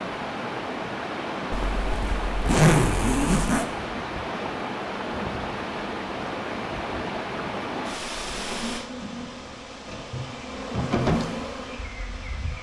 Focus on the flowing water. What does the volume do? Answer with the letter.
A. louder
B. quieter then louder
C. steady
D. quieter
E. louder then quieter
D.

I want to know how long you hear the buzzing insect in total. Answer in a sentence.
The buzzing insect can be heard for 4 seconds in total.